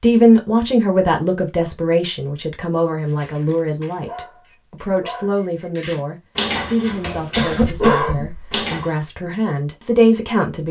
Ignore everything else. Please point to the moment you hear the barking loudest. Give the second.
8 s.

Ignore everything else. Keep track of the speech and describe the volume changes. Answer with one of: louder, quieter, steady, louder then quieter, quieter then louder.
quieter then louder.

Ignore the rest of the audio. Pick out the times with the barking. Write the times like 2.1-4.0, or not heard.
3.0-8.9.